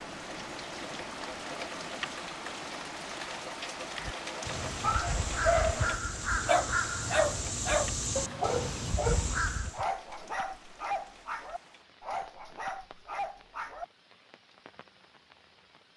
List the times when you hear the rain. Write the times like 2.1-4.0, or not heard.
0.0-15.9.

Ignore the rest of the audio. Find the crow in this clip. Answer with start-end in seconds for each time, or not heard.
3.9-9.8.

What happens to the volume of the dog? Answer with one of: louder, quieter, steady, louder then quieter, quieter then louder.
quieter.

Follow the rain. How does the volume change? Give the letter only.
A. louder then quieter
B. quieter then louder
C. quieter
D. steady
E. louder
C.